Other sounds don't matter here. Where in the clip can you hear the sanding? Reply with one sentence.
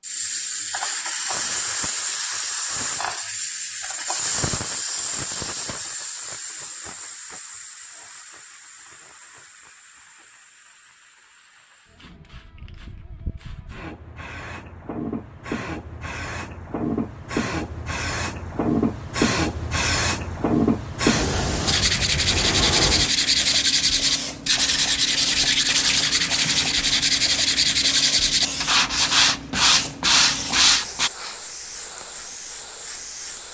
The sanding can be heard from 21.6 to 31.1 s.